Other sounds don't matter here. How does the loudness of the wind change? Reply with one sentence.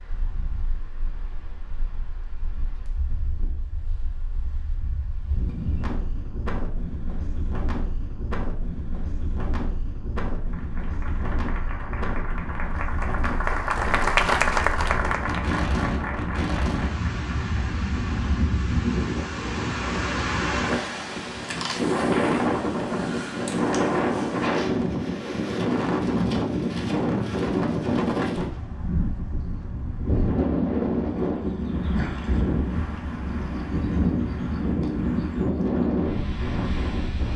The volume of the wind goes up.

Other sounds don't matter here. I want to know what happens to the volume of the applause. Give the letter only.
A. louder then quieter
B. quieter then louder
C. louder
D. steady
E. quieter
A.